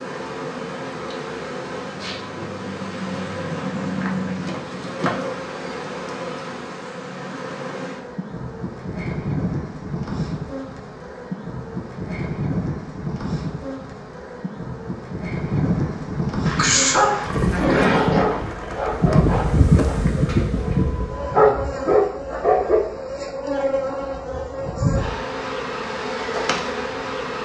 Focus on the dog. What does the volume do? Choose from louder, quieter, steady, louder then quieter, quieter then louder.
quieter then louder.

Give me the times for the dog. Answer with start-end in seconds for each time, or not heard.
16.4-22.8.